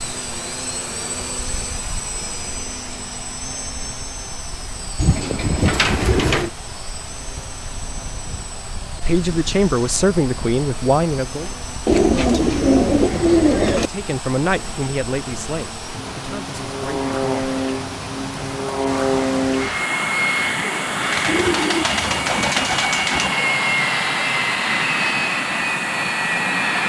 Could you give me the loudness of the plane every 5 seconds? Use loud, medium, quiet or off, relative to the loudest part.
quiet, quiet, quiet, loud, loud, loud.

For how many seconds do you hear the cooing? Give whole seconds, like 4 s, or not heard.
6 s.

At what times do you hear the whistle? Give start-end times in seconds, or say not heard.
not heard.